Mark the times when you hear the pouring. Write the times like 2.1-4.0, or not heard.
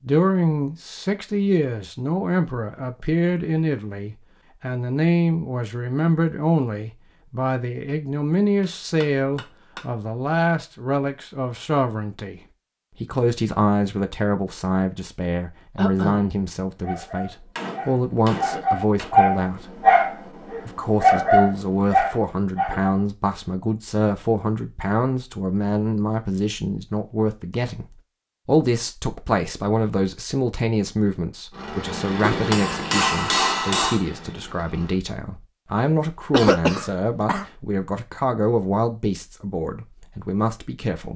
not heard.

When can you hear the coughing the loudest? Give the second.
37 s.